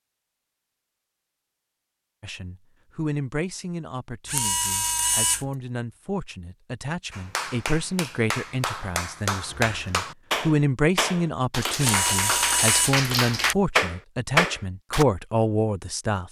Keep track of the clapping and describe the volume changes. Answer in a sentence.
The loudness of the clapping goes up.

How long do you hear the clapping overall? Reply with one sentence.
The clapping can be heard for 8 seconds in total.